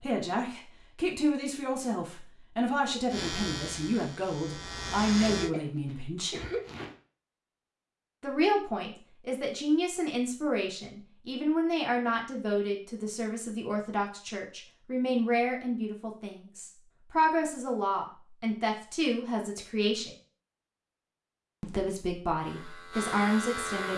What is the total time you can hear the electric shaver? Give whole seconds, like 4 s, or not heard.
4 s.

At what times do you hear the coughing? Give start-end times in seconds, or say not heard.
5.2-7.0.